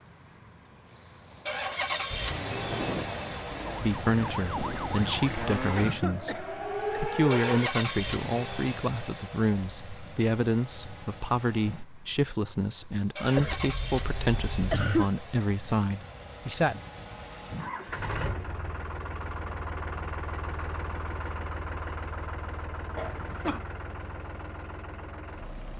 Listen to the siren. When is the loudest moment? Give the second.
7 s.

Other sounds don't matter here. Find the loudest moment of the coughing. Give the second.
15 s.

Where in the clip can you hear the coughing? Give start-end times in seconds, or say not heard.
5.8-7.0, 13.3-15.1, 22.9-23.6.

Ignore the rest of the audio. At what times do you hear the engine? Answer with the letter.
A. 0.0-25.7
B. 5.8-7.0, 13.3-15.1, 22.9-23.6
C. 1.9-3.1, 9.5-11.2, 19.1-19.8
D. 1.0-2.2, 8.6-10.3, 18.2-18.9
A.